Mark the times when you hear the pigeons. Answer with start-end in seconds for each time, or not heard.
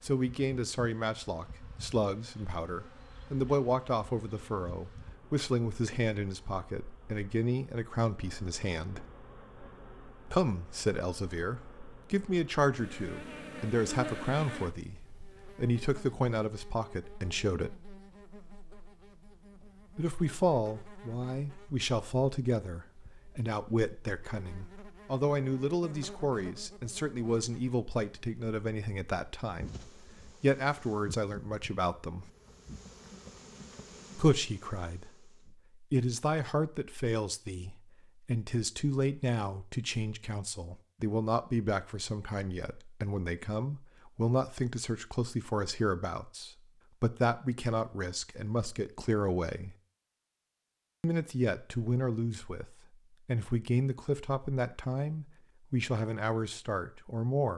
not heard.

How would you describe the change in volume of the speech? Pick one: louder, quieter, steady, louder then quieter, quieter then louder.
steady.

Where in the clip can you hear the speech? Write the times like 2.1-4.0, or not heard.
0.0-9.1, 10.2-17.8, 19.9-32.3, 34.1-49.8, 51.0-57.5.